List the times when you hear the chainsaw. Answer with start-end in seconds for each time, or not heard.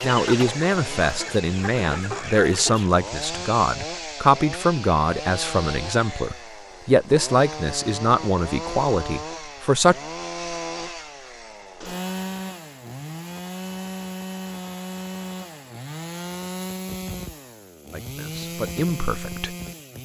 0.0-20.0.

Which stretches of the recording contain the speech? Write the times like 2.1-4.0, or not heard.
0.0-9.9, 17.9-19.6.